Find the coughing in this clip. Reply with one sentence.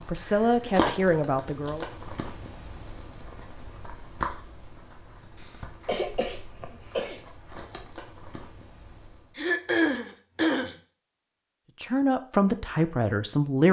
The coughing can be heard from 0.2 to 0.9 s, from 5.3 to 7.2 s and from 9.3 to 10.8 s.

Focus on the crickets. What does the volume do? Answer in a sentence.
The loudness of the crickets goes down.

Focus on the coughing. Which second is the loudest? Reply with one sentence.
The volume of the coughing peaks at 10 seconds.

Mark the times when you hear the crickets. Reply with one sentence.
The crickets can be heard from 0.0 to 9.5 s.